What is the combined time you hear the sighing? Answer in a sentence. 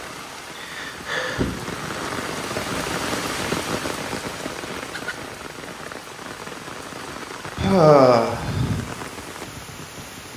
The sighing can be heard for 2 seconds in total.